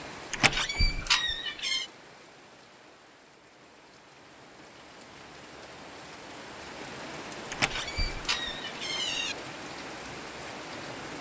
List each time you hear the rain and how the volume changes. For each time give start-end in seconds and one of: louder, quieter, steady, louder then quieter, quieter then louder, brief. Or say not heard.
0.0-11.1 quieter then louder.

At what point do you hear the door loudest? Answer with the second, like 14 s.
1 s.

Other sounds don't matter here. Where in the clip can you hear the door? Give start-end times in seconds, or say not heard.
0.3-1.9, 7.5-9.3.